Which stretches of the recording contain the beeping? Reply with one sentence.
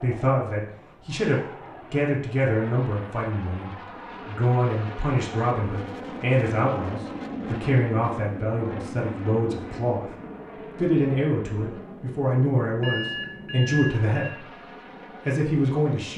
The beeping can be heard from 12.8 to 14.3 s.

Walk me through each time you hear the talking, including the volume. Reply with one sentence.
You can hear the talking from 0.0 to 14.5 s, at a steady volume; and briefly from 15.2 to 16.1 s.